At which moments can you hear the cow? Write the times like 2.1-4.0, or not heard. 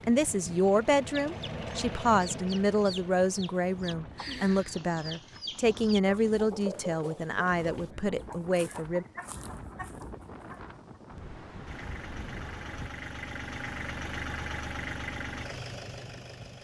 not heard.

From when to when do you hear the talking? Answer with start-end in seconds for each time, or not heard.
0.1-9.1.